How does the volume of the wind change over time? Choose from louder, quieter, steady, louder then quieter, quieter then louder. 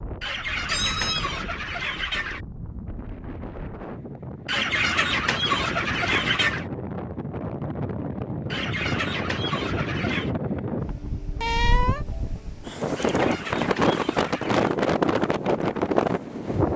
louder.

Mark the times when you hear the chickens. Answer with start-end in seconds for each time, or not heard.
0.2-2.5, 4.5-6.7, 8.5-10.3, 12.9-14.7.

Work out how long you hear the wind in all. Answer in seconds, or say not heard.
17 s.